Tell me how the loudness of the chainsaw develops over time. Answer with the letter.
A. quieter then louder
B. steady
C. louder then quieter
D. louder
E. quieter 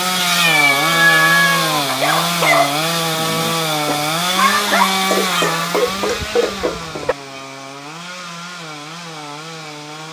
E.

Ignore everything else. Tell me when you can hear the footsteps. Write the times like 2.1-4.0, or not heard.
not heard.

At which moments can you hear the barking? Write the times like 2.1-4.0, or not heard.
1.9-7.2.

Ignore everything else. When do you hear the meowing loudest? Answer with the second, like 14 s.
1 s.